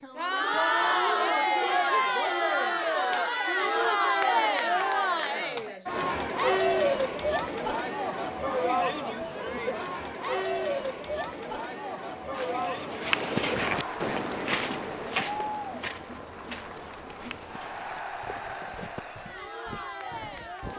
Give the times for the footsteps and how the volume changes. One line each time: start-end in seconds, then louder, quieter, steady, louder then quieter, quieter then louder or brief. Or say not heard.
12.3-20.7 quieter.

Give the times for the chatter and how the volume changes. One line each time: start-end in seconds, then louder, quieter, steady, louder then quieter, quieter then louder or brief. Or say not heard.
0.0-20.7 quieter.